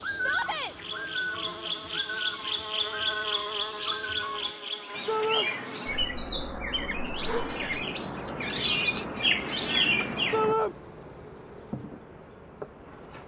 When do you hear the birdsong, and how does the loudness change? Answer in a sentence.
The birdsong can be heard from 0.0 to 10.6 s, getting louder.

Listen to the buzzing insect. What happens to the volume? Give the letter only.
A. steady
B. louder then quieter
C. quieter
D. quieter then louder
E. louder
C.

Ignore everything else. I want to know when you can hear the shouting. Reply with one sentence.
You can hear the shouting from 0.1 to 0.8 s, from 5.0 to 5.5 s and from 10.3 to 10.8 s.